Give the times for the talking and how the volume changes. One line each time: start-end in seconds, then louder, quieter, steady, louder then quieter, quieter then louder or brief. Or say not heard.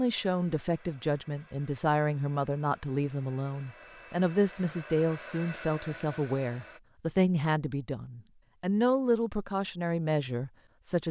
0.0-11.0 steady.